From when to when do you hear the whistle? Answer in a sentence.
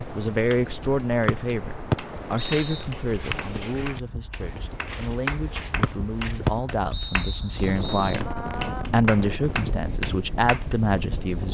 You can hear the whistle from 1.2 to 2.9 s and from 5.8 to 8.2 s.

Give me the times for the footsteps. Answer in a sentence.
You can hear the footsteps from 2.0 to 6.7 s.